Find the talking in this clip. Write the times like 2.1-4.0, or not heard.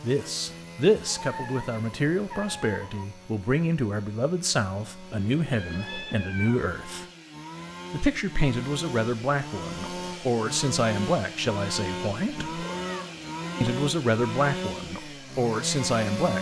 0.0-7.0, 7.9-12.5, 13.6-16.3.